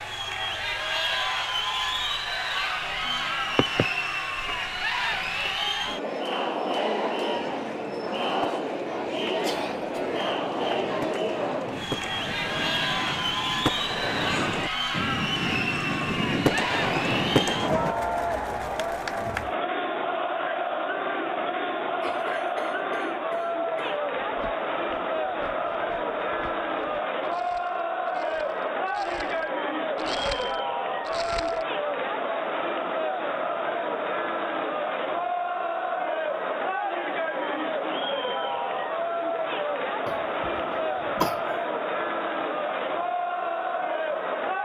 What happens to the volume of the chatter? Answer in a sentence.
The volume of the chatter stays about the same.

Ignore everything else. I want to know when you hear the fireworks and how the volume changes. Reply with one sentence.
The fireworks can be heard from 7.3 to 17.9 s, getting louder.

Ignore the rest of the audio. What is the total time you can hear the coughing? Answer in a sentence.
The coughing can be heard for 4 seconds in total.